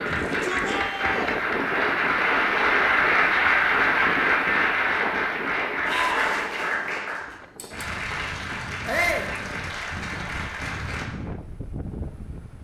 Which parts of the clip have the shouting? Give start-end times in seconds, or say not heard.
0.1-1.4, 5.8-6.3, 8.8-9.3.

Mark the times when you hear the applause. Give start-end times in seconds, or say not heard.
0.0-11.1.